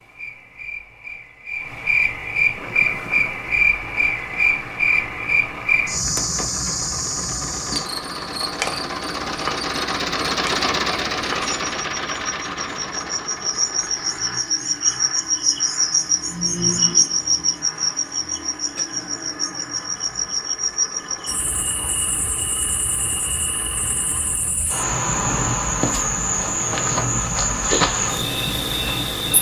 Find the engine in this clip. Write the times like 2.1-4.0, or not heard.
2.5-29.3.